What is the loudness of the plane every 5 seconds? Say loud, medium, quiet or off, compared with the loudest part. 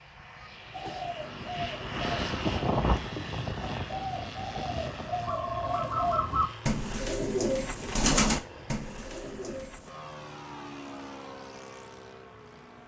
loud, medium, medium.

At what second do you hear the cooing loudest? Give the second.
8 s.